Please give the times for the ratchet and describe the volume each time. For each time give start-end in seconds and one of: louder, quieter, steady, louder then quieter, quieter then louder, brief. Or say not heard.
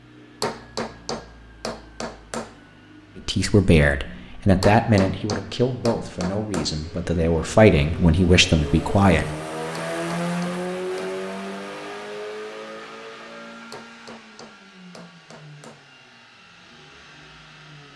not heard.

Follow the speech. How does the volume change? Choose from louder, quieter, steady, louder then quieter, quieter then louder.
quieter then louder.